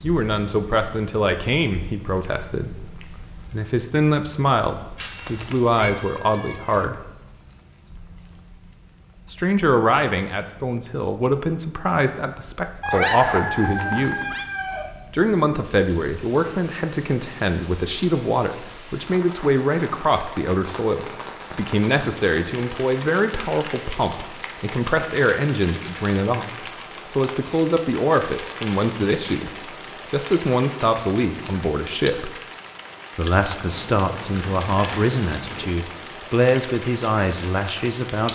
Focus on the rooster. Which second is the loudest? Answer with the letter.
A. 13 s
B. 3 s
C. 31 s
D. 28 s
A.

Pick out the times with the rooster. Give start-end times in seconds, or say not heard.
12.8-14.8.